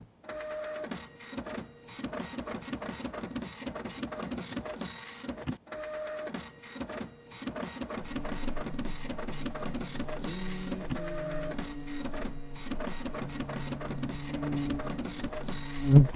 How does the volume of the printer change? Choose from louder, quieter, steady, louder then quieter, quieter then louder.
steady.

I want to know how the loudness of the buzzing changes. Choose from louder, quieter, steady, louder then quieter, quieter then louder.
louder.